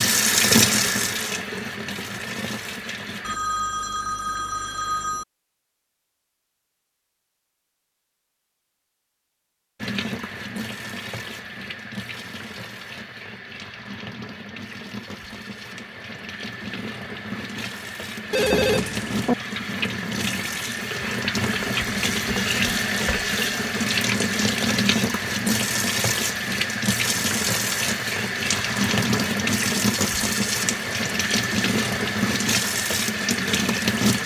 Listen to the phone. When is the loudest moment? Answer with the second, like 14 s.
19 s.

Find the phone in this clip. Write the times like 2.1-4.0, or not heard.
3.2-5.2, 18.3-19.4.